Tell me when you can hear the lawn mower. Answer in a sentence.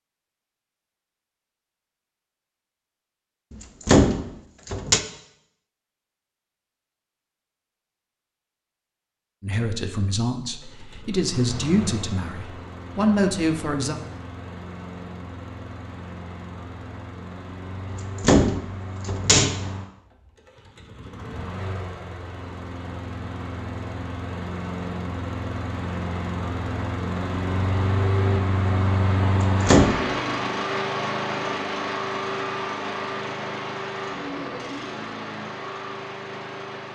The lawn mower can be heard from 10.4 to 36.9 s.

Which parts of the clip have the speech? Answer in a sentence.
You can hear the speech from 9.4 to 13.9 s.